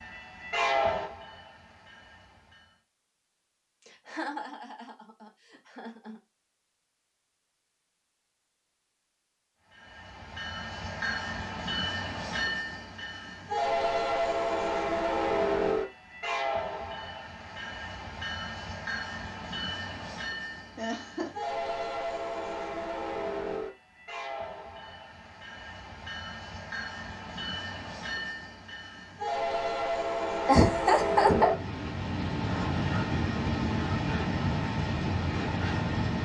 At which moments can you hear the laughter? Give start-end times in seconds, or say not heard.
3.9-6.2, 20.8-21.4, 30.4-31.6.